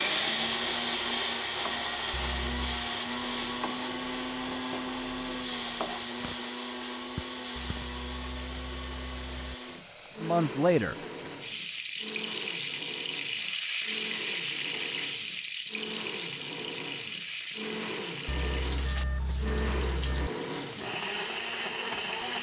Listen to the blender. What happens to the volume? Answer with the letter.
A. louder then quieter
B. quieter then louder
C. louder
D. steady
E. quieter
B.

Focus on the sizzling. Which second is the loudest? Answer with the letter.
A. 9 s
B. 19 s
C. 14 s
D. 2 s
C.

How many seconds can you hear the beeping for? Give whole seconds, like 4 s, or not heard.
5 s.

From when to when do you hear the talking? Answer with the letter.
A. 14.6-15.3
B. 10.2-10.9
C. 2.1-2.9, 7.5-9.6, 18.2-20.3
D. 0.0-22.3
B.